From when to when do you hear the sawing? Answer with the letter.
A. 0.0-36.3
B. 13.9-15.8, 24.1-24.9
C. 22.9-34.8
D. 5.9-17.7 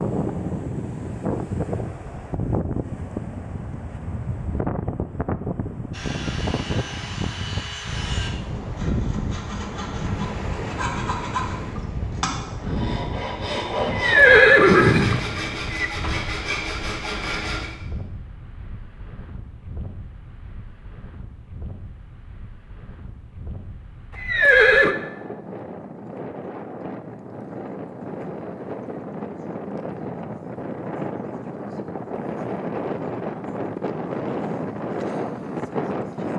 D.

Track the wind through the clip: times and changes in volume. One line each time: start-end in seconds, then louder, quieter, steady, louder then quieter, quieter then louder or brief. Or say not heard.
0.0-36.3 quieter then louder.